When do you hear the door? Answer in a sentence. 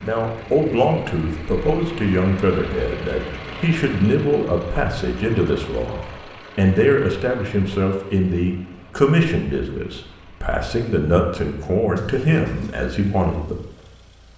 You can't hear the door here.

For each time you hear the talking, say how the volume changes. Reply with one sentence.
The talking can be heard from 0.0 to 13.7 s, at a steady volume.